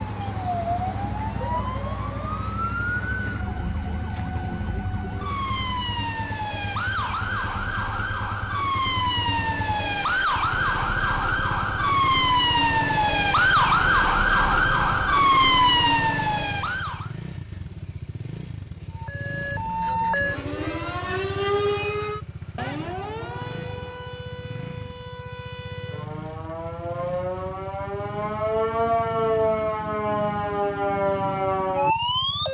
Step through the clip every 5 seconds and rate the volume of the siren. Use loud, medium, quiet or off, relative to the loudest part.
medium, medium, loud, loud, medium, medium, loud.